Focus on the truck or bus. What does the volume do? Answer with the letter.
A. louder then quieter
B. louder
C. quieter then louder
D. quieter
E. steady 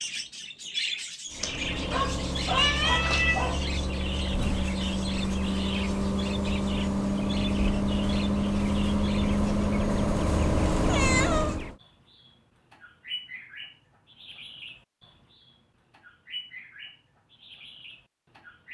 B.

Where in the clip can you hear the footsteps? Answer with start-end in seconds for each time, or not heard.
not heard.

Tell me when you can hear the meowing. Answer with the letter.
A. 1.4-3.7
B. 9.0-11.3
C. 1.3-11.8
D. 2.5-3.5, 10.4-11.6
D.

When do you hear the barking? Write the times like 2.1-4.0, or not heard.
1.4-3.7.